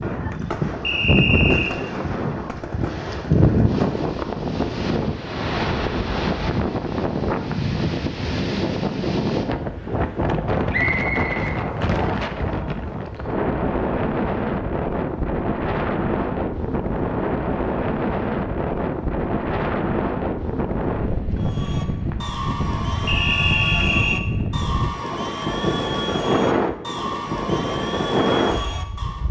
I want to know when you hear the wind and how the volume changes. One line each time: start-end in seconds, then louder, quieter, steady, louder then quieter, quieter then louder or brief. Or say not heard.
0.0-29.2 steady.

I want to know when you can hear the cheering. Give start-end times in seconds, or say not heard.
21.4-29.2.